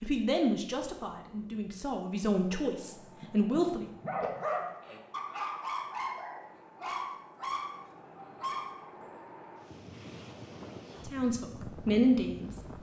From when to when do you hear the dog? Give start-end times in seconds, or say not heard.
2.8-9.2.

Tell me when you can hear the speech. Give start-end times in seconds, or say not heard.
0.0-3.9, 11.1-12.6.